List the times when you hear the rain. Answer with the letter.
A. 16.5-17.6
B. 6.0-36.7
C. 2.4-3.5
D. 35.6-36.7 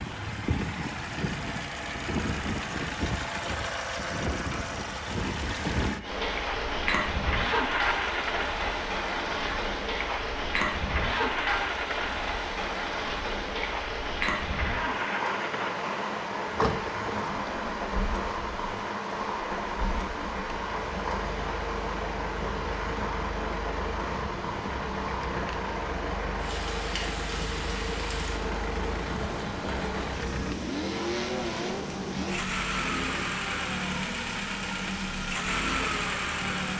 B.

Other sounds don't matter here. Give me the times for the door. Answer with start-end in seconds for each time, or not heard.
16.5-17.6.